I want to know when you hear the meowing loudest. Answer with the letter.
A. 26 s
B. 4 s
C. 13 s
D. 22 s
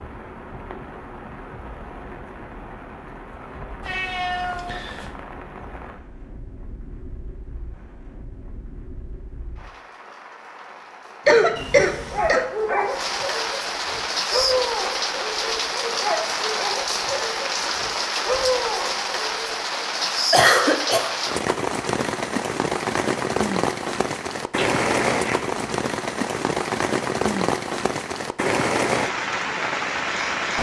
B.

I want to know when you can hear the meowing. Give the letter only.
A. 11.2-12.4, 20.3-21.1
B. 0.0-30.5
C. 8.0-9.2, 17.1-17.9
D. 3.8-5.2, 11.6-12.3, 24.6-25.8
D.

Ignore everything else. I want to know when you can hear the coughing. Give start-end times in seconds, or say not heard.
11.2-12.4, 20.3-21.1.